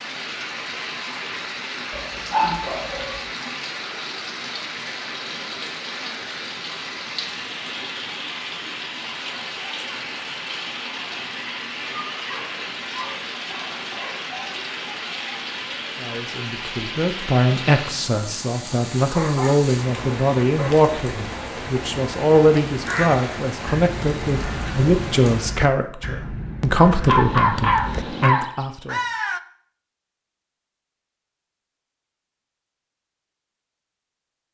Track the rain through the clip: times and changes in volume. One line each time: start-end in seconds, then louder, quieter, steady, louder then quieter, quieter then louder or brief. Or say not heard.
0.0-25.6 steady.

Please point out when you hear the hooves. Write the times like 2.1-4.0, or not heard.
not heard.